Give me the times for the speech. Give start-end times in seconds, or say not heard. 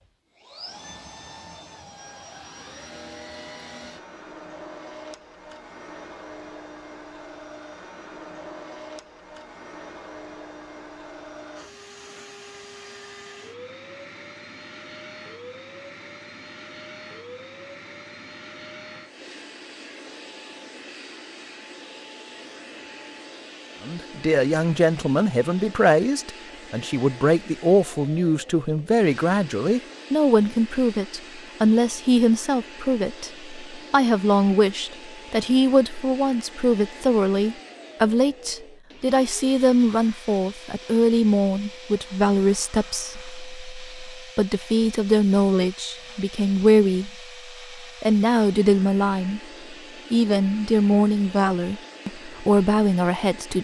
23.9-47.1, 47.8-53.5.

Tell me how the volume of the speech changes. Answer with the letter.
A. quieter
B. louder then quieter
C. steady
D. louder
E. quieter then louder
C.